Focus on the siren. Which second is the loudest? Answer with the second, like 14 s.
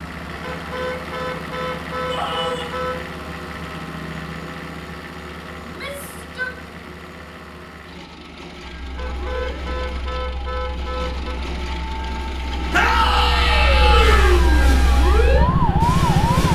16 s.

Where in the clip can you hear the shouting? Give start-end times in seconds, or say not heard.
2.0-2.9, 5.6-6.5, 12.7-14.3.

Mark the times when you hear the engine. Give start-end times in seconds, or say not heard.
0.0-16.5.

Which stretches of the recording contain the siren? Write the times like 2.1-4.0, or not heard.
8.7-16.5.